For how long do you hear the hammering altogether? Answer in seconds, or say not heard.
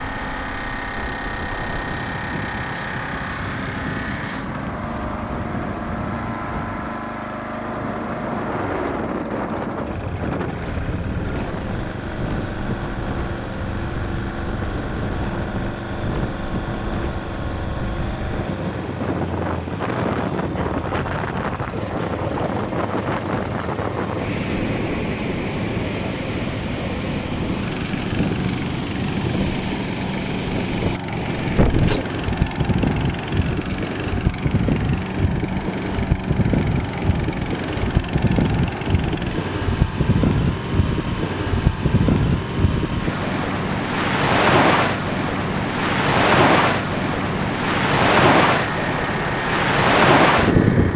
not heard.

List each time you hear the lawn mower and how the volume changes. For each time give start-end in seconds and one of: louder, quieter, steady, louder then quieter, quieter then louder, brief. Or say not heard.
0.0-50.9 steady.